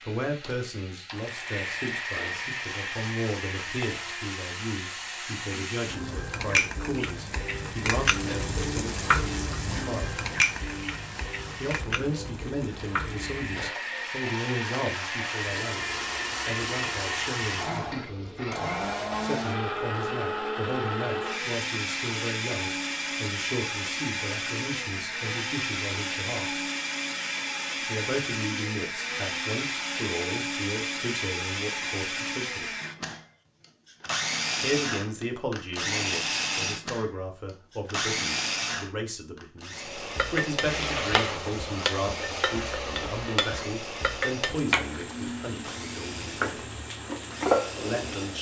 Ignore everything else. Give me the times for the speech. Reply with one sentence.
You can hear the speech from 0.0 to 10.2 s, from 11.6 to 26.6 s, from 27.9 to 32.8 s, from 34.6 to 46.8 s and from 47.8 to 48.3 s.